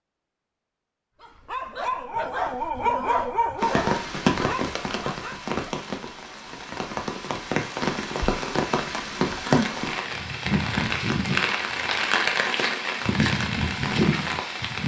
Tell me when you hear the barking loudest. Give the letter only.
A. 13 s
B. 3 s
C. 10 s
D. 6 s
B.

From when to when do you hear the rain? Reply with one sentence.
You can hear the rain from 3.6 to 14.8 s.